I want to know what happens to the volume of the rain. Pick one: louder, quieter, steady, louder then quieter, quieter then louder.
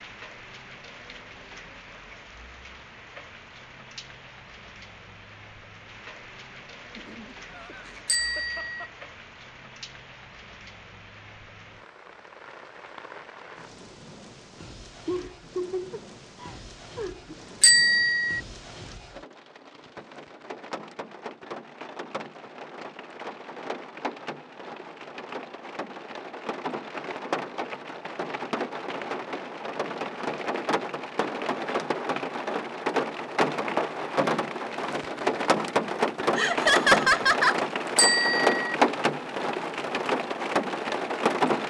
louder.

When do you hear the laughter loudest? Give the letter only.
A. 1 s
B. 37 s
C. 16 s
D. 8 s
B.